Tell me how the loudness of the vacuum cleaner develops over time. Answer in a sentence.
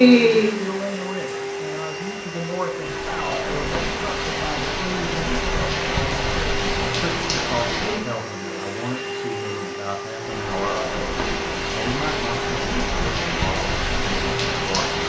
The volume of the vacuum cleaner stays about the same.